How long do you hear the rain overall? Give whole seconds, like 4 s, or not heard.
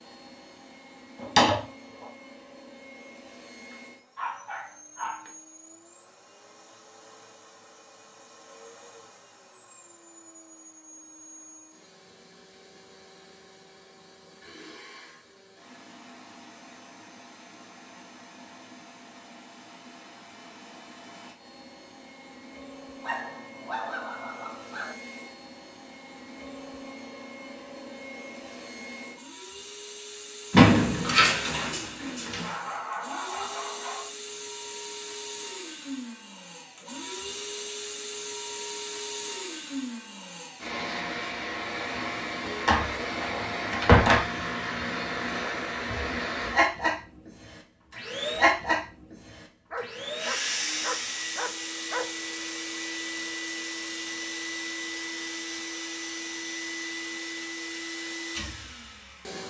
not heard.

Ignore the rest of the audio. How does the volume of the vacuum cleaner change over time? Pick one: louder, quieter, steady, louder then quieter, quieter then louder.
louder.